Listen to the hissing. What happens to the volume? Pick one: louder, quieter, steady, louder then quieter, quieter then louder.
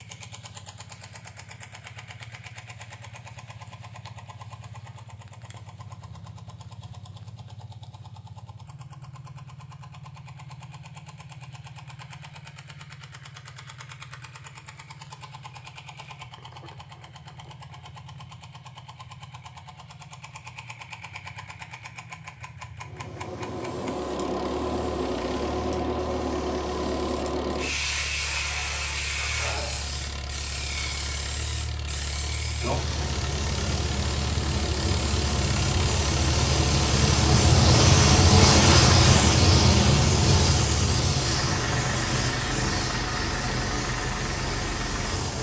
louder then quieter.